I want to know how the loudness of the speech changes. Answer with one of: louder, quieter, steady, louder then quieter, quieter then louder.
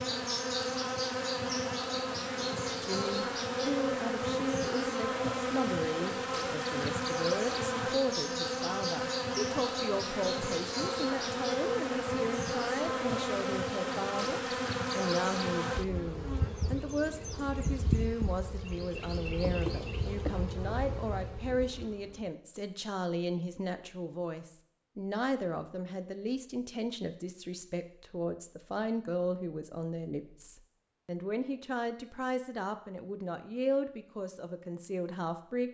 steady.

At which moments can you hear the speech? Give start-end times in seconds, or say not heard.
2.7-35.6.